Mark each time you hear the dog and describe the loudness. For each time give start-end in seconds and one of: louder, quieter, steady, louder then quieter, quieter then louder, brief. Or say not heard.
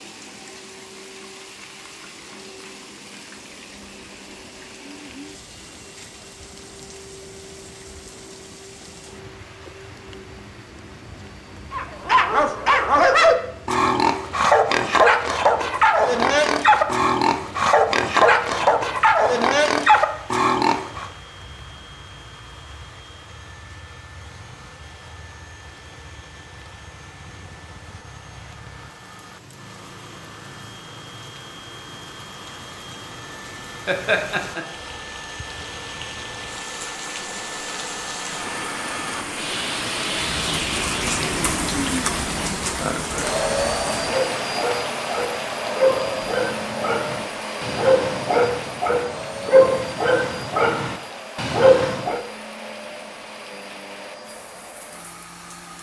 11.7-21.1 steady
43.0-52.2 louder.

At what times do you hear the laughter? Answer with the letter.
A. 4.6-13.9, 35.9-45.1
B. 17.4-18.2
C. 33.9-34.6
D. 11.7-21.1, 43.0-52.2
C.